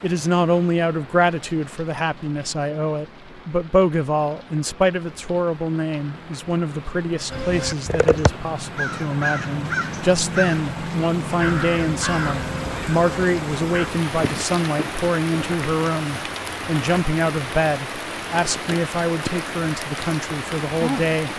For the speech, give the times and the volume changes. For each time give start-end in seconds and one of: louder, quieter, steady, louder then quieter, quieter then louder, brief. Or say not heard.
0.0-21.3 steady.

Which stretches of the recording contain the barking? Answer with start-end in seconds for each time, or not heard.
not heard.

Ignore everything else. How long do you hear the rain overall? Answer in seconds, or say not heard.
21 s.